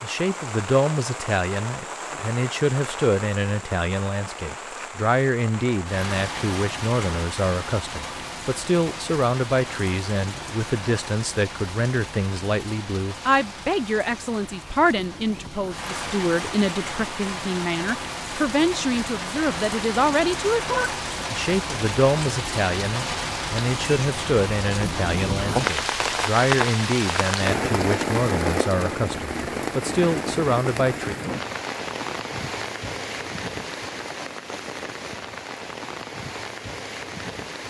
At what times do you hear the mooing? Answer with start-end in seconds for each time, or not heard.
not heard.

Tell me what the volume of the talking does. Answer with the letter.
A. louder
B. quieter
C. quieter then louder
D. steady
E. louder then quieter
D.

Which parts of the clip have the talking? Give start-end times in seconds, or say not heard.
0.0-31.1.